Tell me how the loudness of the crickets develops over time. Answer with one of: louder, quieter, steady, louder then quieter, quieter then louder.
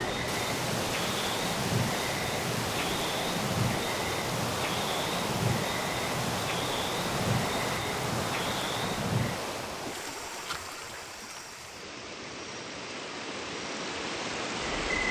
quieter.